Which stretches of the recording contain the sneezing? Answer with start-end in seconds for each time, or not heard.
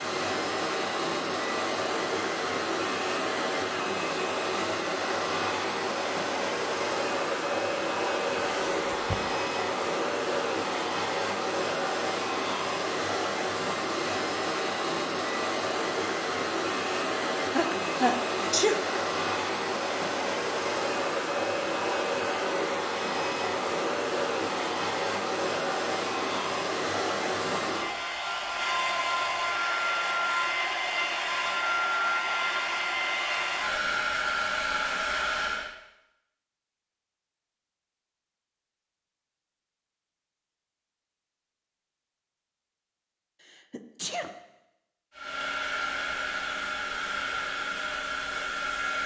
8.4-9.2, 17.5-18.8, 43.5-44.3.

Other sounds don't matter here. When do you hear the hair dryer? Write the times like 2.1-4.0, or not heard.
0.0-35.7, 45.1-49.0.